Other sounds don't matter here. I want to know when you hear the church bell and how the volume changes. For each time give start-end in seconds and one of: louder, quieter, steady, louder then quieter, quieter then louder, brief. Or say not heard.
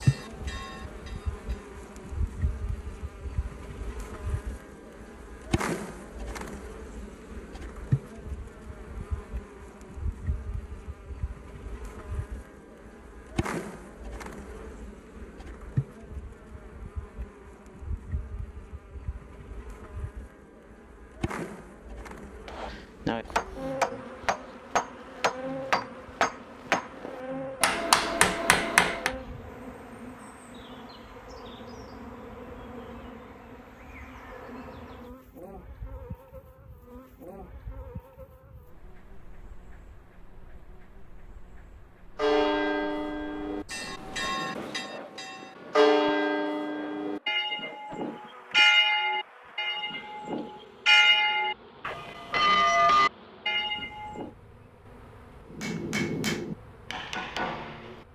0.0-1.6 brief
42.1-54.3 louder.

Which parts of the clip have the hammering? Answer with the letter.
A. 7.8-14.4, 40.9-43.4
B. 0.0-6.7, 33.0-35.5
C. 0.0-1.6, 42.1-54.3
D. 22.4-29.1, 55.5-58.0
D.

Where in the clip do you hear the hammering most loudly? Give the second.
28 s.